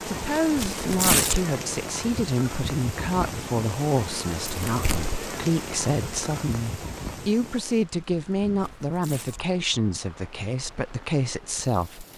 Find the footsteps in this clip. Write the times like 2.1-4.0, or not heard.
not heard.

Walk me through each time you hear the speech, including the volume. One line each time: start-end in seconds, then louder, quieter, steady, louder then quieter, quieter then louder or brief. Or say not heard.
0.1-12.1 steady.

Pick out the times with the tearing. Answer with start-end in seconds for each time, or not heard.
0.6-1.4, 4.7-5.2, 8.6-9.5.